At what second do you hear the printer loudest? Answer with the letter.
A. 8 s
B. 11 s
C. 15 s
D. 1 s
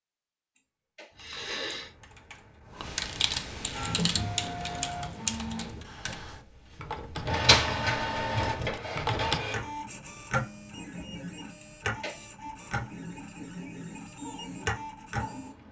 A.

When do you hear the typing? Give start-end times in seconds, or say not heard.
1.1-9.4.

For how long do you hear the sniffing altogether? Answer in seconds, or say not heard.
2 s.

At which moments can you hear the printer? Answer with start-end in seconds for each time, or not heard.
3.7-15.6.